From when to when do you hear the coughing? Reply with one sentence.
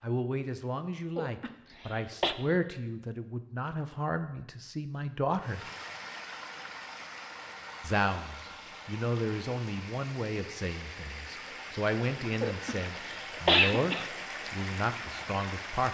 You can hear the coughing from 1.1 to 2.4 s and from 12.4 to 14.1 s.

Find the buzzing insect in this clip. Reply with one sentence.
You can't hear the buzzing insect here.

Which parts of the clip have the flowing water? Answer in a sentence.
You can hear the flowing water from 5.4 to 15.9 s.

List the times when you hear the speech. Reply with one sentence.
You can hear the speech from 0.0 to 5.6 s and from 7.8 to 15.9 s.